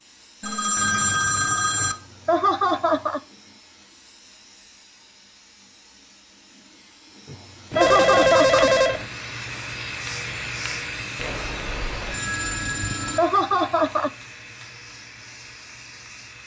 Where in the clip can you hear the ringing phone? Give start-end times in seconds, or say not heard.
0.4-1.9, 7.7-9.1, 11.2-13.2.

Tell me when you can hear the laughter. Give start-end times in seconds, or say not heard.
1.8-3.2, 7.2-8.8, 12.7-14.1.